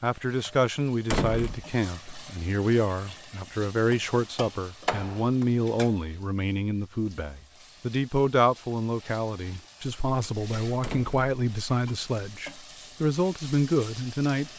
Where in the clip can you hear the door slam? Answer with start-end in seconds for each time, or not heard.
1.1-1.6, 4.8-5.5, 10.8-11.3.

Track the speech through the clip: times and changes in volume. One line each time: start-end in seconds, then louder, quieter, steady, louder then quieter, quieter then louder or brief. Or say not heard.
0.0-14.5 steady.